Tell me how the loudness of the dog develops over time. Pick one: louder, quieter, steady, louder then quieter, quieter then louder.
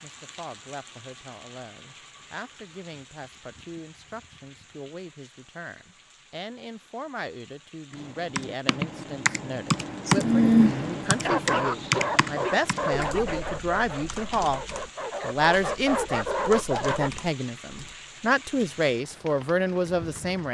quieter then louder.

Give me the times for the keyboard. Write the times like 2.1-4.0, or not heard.
7.9-17.9.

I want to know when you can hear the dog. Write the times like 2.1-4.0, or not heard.
11.2-17.1.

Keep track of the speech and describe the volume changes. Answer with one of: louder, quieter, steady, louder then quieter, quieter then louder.
louder.